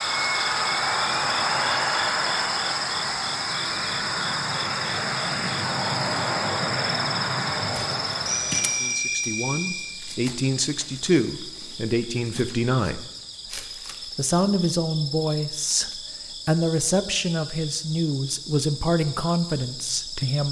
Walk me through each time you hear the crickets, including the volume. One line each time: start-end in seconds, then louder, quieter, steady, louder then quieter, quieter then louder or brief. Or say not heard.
0.0-20.4 quieter.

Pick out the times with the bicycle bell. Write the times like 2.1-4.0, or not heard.
8.2-9.9.